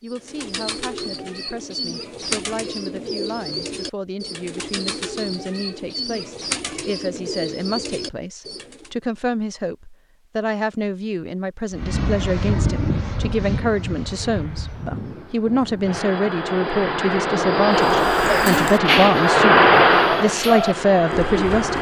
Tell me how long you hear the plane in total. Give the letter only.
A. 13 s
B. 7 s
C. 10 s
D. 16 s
C.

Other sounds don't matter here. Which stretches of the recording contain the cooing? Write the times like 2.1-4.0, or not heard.
0.1-8.9, 17.9-21.7.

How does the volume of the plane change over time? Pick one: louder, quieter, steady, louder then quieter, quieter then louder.
quieter then louder.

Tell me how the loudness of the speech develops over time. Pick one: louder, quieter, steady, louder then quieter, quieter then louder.
louder.